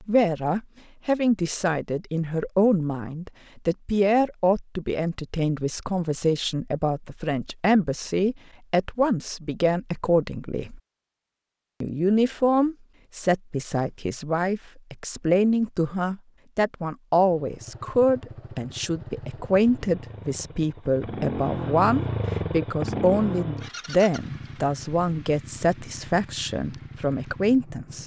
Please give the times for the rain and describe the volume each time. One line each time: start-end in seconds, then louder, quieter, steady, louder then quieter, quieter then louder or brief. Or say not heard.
not heard.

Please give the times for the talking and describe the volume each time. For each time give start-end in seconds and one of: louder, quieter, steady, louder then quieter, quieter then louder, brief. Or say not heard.
0.0-10.8 steady
11.8-28.0 steady.